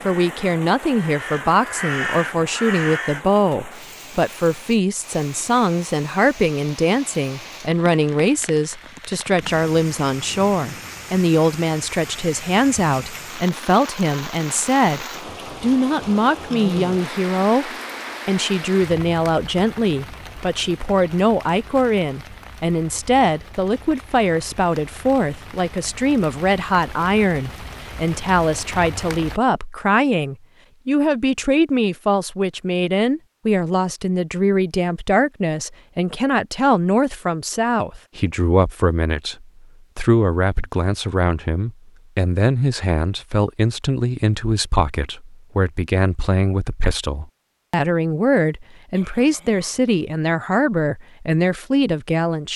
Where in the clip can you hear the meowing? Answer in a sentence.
The meowing can't be heard in this clip.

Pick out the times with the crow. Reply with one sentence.
The crow can be heard from 0.0 to 3.2 s.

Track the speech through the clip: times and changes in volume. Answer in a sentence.
The speech can be heard from 0.1 to 52.5 s, at a steady volume.